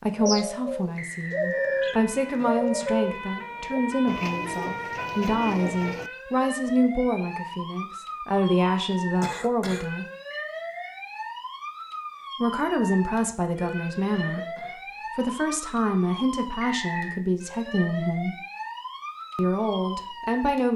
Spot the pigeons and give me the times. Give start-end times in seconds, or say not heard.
0.1-6.1.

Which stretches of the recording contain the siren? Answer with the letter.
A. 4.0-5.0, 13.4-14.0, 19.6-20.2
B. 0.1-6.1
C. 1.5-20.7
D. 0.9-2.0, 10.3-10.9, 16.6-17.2
C.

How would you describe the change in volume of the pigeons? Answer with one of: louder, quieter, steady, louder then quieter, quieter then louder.
quieter.